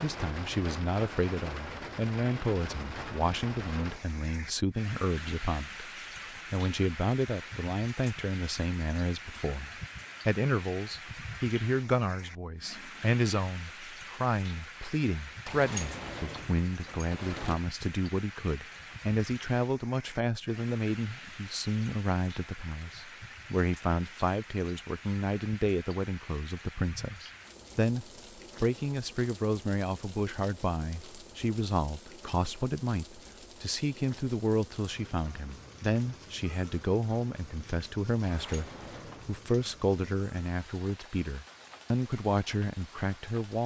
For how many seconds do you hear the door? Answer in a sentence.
The door can be heard for 3 seconds in total.